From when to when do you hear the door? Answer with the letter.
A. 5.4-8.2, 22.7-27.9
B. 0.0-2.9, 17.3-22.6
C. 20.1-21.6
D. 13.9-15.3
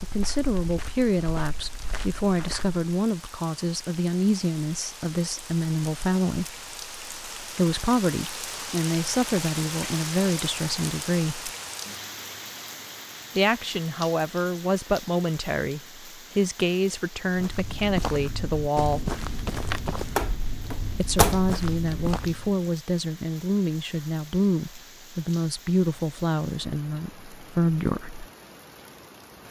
C.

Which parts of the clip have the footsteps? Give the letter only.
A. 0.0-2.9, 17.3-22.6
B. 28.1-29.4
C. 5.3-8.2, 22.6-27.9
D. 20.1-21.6
A.